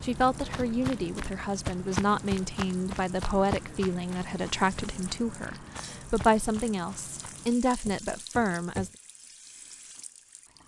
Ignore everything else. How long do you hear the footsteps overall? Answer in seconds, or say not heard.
9 s.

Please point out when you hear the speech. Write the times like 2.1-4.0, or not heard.
0.0-8.9.